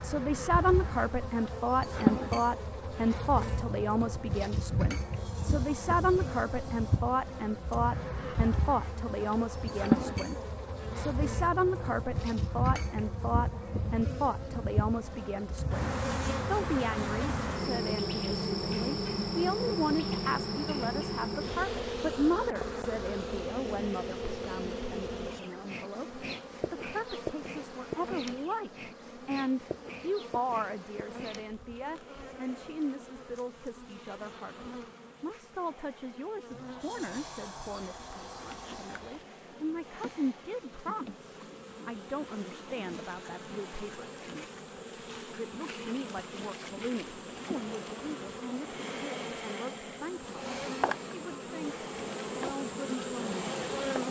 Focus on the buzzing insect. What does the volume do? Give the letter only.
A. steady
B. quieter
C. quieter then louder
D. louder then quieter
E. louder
C.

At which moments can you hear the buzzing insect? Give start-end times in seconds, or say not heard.
0.0-54.0.